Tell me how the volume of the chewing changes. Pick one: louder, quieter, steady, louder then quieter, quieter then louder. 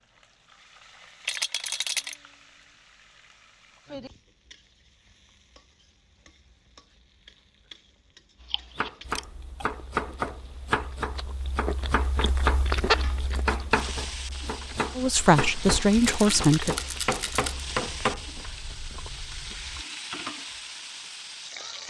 louder then quieter.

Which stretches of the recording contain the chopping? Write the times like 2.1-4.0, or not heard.
8.8-18.2.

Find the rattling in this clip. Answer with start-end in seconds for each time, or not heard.
1.2-2.2, 15.9-17.6.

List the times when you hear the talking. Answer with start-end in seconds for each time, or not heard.
14.9-16.8.